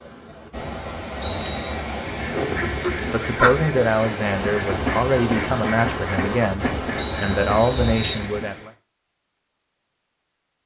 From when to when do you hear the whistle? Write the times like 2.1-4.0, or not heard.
1.2-1.8, 7.0-8.2.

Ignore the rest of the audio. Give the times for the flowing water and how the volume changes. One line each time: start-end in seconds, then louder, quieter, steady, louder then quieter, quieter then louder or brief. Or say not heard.
0.0-8.7 steady.